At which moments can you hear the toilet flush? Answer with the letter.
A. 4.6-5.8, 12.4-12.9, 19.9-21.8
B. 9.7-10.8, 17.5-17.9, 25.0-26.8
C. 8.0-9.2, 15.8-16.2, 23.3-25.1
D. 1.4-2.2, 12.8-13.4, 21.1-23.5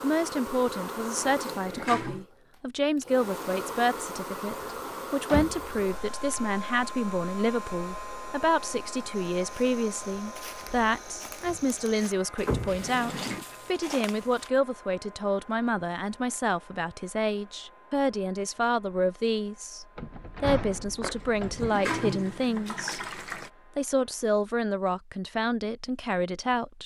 D.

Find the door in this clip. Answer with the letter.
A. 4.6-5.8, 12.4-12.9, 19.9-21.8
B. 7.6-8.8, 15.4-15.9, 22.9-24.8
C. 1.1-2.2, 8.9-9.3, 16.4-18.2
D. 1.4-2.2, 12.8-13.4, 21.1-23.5
A.